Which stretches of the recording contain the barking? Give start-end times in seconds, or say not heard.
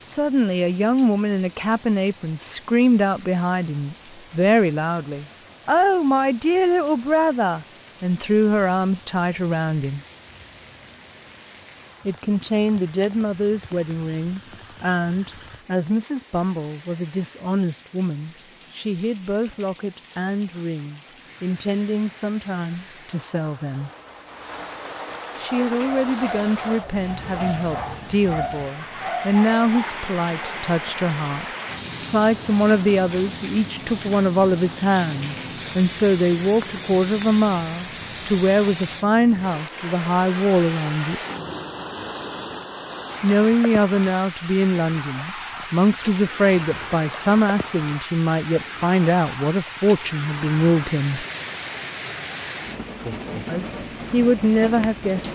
25.1-30.6.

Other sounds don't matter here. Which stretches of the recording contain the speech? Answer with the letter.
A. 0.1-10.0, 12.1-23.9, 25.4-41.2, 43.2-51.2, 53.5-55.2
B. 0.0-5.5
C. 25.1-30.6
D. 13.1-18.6
A.